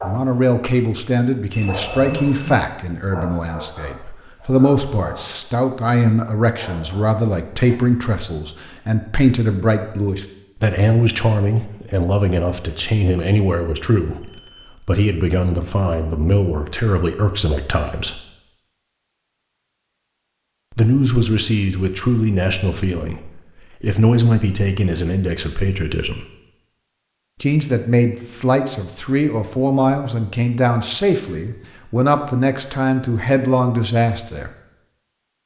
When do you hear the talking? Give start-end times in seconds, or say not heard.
0.0-18.2, 20.7-26.2, 27.4-34.5.